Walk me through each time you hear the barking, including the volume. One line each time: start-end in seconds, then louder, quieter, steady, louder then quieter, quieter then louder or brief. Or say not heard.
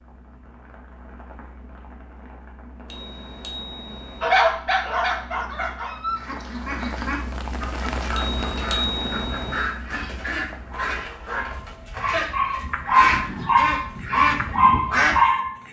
4.2-6.2 brief
10.7-15.6 louder.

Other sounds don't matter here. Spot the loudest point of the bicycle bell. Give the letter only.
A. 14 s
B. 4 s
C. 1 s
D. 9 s
D.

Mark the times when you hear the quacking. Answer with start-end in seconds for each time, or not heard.
6.2-15.2.